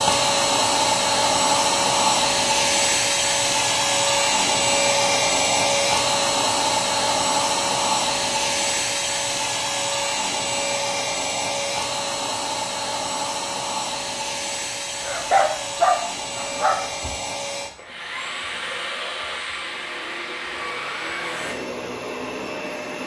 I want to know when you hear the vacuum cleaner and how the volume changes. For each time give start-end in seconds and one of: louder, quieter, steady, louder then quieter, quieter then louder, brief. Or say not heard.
0.0-23.0 quieter.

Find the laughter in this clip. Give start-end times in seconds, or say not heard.
not heard.